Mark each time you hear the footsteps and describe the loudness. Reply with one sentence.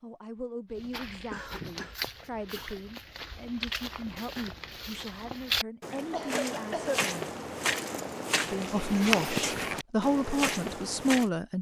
The footsteps can be heard from 0.7 to 11.3 s, getting louder.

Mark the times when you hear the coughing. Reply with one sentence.
You can hear the coughing from 0.8 to 2.7 s and from 6.1 to 7.1 s.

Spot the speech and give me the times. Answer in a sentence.
You can hear the speech from 0.0 to 7.3 s and from 8.4 to 11.5 s.